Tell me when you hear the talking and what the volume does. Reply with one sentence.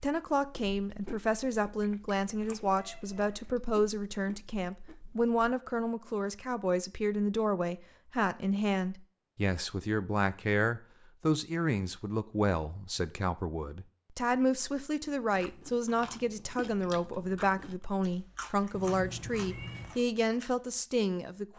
The talking can be heard from 0.0 to 21.5 s, at a steady volume.